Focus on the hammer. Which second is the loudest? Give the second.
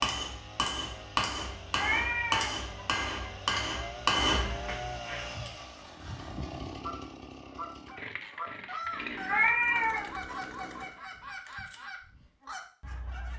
4 s.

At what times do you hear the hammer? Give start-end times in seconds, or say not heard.
0.0-5.5.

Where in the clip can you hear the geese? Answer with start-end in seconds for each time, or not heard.
5.2-13.3.